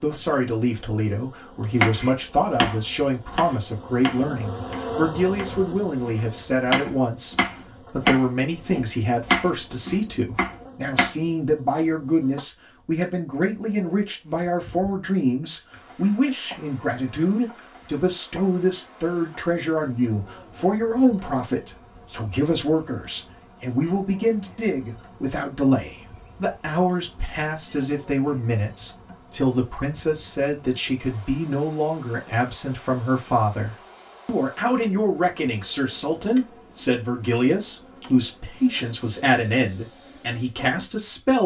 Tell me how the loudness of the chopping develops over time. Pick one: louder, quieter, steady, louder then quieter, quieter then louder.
quieter then louder.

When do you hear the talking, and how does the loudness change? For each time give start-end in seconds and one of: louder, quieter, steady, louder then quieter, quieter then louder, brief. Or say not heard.
0.0-41.4 steady.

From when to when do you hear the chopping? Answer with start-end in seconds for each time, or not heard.
1.7-11.1.